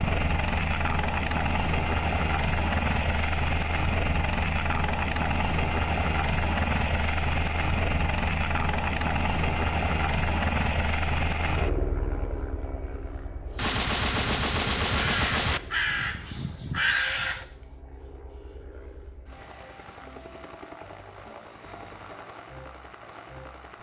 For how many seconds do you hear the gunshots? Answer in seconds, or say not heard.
2 s.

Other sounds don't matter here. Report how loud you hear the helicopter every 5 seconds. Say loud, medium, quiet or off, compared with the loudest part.
loud, loud, loud, quiet, quiet.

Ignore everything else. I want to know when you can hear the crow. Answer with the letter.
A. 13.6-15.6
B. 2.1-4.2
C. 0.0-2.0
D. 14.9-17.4
D.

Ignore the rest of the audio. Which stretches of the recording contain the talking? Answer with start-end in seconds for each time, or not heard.
not heard.